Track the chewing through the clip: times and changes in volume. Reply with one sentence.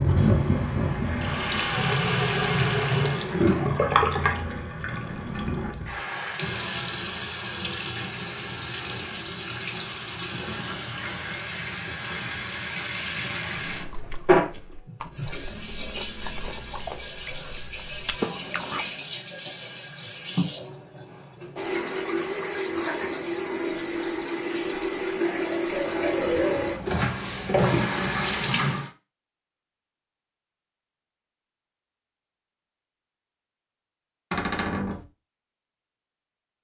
You can hear the chewing from 13.7 to 19.1 s, getting louder.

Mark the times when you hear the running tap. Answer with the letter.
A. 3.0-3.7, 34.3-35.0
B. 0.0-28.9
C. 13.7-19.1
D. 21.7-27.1
B.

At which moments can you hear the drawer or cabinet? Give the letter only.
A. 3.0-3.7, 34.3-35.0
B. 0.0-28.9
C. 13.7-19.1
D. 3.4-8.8
A.